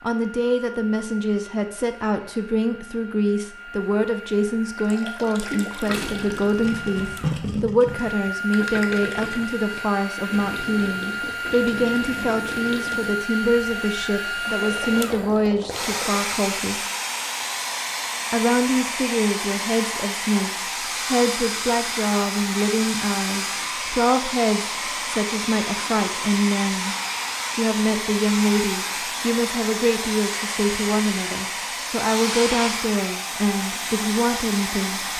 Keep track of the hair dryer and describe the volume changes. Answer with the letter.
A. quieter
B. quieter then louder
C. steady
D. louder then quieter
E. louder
E.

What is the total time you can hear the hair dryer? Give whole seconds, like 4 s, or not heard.
35 s.